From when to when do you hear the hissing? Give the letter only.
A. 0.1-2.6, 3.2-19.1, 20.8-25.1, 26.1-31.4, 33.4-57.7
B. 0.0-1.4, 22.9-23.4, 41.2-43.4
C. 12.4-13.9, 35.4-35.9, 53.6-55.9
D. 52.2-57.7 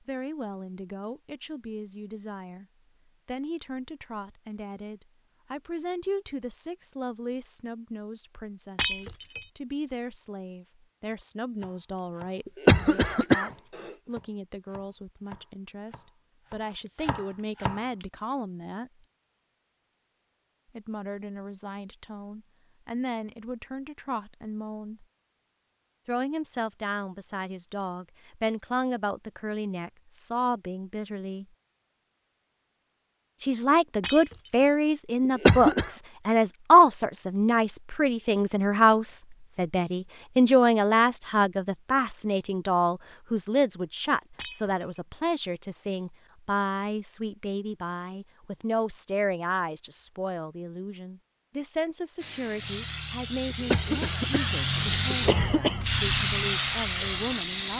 D.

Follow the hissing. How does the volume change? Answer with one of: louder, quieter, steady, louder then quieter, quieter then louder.
louder.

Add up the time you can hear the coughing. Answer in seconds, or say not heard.
4 s.